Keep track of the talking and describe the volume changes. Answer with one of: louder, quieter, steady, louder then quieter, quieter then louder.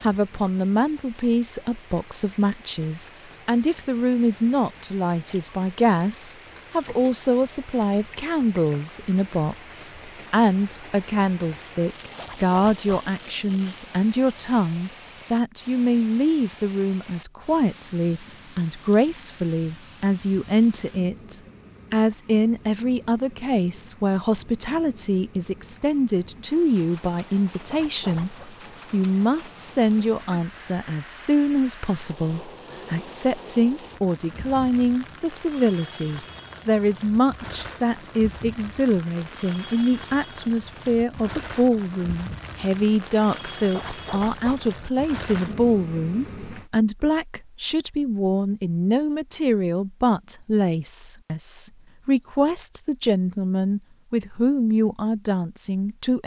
steady.